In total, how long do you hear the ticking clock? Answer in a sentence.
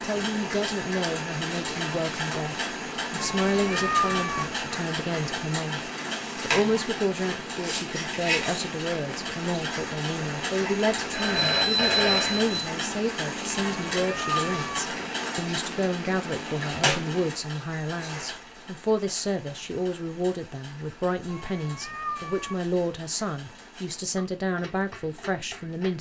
You can hear the ticking clock for 26 seconds altogether.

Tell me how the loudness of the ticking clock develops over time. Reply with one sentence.
The loudness of the ticking clock goes down.